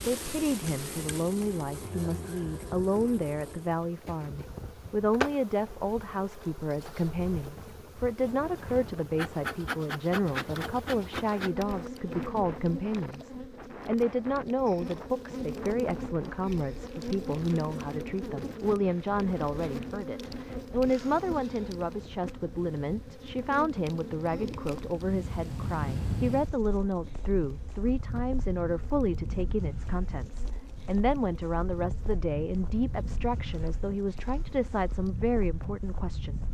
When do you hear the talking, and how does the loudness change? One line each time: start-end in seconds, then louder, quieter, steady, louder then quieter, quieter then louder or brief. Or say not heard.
0.0-36.4 steady.